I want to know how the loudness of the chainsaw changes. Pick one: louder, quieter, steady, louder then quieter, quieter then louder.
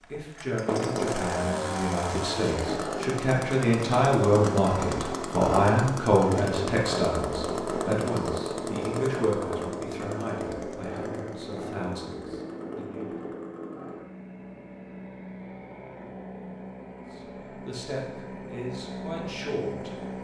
quieter.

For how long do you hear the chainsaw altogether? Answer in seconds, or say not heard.
20 s.